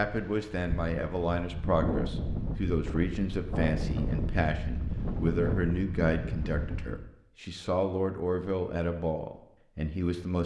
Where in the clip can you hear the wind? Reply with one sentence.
You can hear the wind from 0.1 to 7.1 s.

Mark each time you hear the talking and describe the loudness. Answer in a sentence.
You can hear the talking from 0.0 to 10.4 s, at a steady volume.